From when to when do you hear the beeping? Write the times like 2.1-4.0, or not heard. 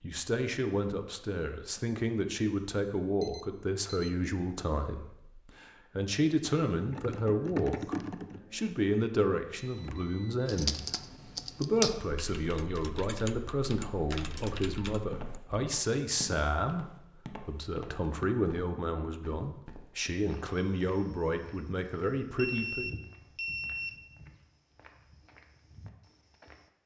3.2-4.1, 9.6-10.5, 22.4-24.0.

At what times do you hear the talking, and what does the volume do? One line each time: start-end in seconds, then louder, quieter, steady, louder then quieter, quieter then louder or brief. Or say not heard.
0.0-22.9 steady.